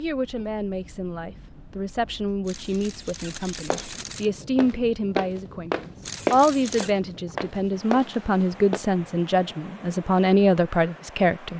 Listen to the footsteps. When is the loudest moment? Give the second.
6 s.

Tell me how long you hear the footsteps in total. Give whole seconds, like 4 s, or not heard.
5 s.